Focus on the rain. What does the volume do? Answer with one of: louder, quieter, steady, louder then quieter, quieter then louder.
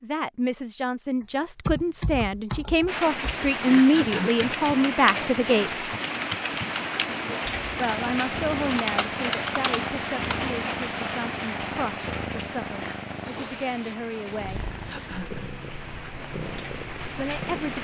quieter.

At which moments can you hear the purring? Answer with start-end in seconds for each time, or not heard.
7.5-17.7.